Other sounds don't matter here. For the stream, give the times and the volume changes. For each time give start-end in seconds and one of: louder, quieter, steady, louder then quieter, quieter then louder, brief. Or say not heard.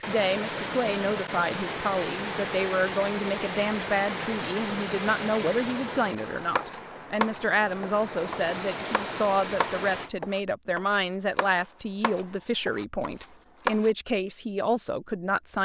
0.0-10.1 quieter then louder.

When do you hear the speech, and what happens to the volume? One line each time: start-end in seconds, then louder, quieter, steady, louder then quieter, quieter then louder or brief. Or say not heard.
0.0-15.6 steady.